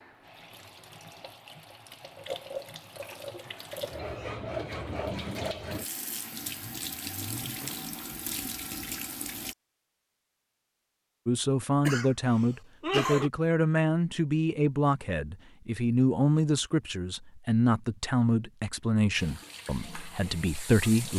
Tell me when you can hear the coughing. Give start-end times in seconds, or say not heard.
11.8-13.3.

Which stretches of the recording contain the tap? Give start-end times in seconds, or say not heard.
0.0-9.6, 19.1-21.1.